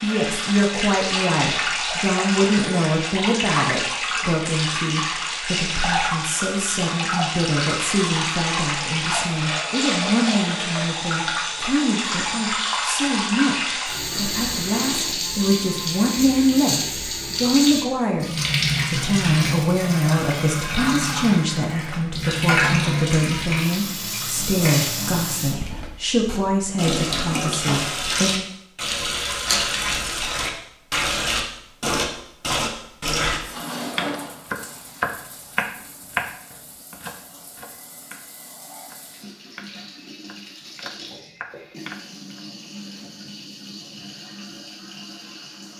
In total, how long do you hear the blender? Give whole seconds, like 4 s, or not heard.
not heard.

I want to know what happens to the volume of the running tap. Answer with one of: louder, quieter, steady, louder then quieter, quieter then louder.
quieter.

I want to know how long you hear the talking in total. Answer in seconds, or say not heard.
28 s.